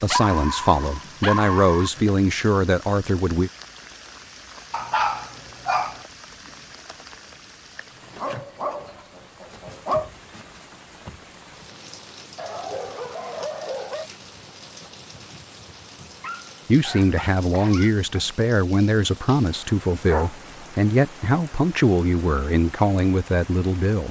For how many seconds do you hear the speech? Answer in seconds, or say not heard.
11 s.